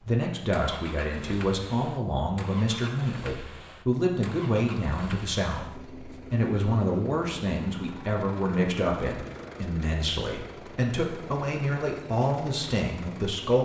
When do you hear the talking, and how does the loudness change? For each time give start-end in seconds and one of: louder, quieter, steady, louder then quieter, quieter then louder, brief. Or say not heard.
0.1-13.5 steady.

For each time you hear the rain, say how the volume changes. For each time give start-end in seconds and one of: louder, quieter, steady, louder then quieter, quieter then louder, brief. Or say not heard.
not heard.